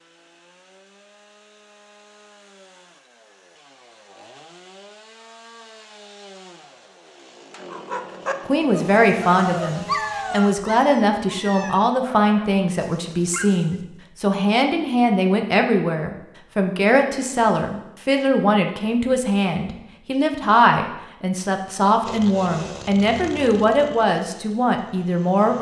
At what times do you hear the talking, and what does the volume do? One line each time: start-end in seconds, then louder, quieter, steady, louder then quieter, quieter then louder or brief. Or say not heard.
8.4-25.5 steady.